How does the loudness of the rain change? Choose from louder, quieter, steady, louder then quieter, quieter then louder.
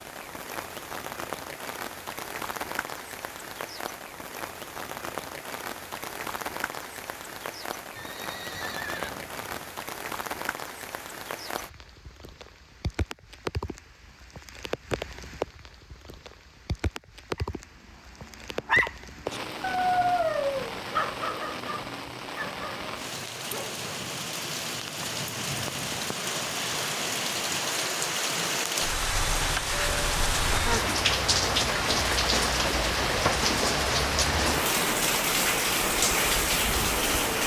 louder.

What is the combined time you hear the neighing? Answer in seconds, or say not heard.
2 s.